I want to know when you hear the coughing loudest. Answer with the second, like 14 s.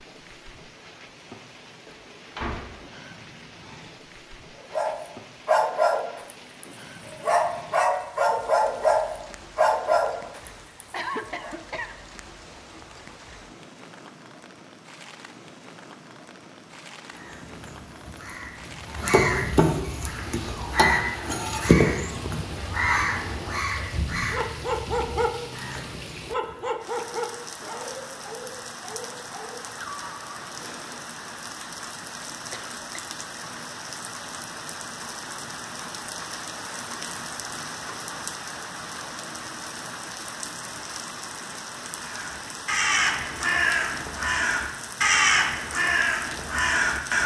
11 s.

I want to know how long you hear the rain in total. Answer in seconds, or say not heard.
47 s.